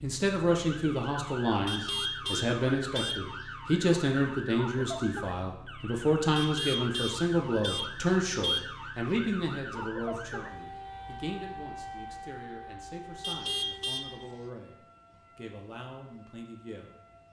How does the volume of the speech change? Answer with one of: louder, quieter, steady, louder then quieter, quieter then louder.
quieter.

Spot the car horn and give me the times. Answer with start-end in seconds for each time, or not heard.
1.6-3.5, 6.3-8.8, 13.2-14.2.